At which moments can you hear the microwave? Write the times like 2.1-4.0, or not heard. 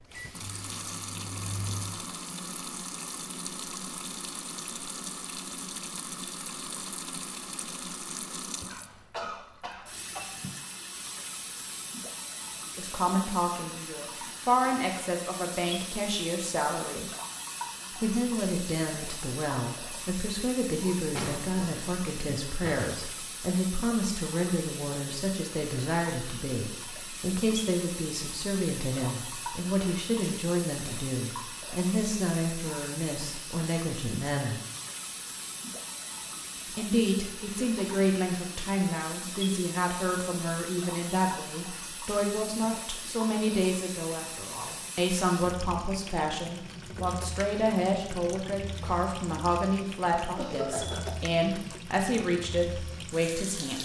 0.0-2.0.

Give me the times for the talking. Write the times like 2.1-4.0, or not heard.
12.8-17.1, 17.9-34.6, 36.8-53.8.